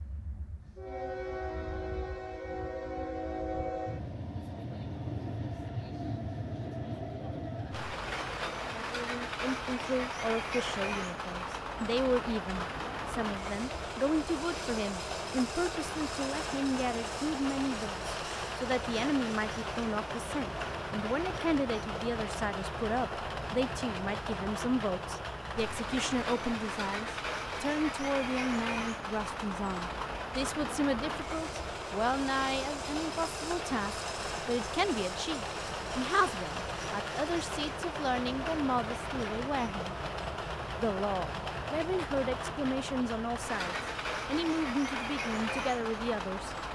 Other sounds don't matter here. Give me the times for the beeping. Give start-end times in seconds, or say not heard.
not heard.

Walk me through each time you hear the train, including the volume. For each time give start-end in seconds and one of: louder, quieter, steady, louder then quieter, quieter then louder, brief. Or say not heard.
0.0-46.7 steady.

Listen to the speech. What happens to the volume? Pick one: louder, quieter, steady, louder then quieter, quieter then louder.
steady.